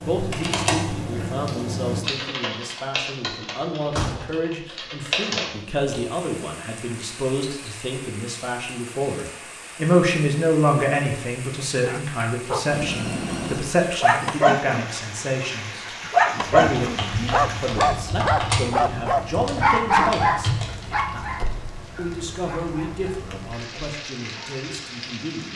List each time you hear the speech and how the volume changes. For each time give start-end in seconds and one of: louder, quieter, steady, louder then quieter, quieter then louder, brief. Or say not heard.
0.0-25.5 louder then quieter.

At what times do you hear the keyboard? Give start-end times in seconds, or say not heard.
0.0-6.0, 16.6-21.1.